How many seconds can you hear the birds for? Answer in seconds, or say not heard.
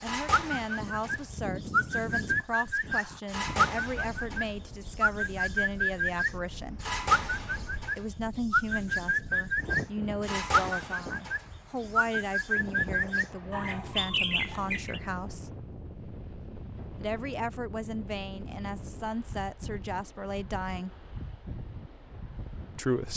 15 s.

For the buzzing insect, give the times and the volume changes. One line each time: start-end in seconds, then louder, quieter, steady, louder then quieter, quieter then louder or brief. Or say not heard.
not heard.